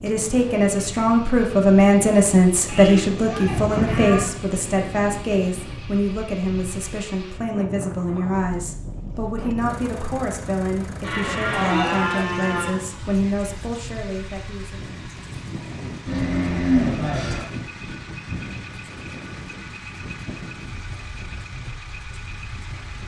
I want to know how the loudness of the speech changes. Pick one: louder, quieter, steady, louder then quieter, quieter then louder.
quieter.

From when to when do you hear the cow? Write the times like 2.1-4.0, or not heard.
2.6-4.3, 11.0-12.8, 16.1-17.4.